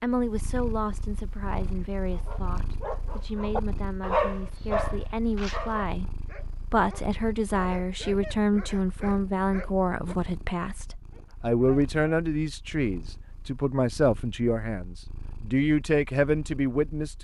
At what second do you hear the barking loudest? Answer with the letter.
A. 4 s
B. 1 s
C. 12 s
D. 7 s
A.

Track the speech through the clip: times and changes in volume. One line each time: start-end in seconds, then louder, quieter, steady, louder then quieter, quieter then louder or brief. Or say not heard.
0.0-17.1 louder.